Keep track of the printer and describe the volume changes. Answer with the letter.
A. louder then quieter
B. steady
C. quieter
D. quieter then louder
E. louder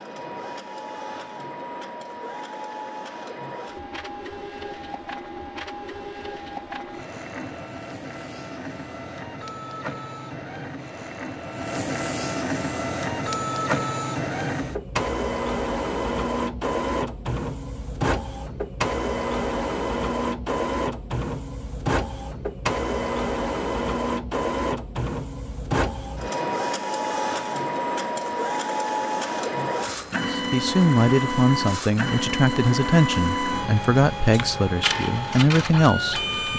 E.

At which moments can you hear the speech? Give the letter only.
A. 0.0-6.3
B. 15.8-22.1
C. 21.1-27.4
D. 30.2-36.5
D.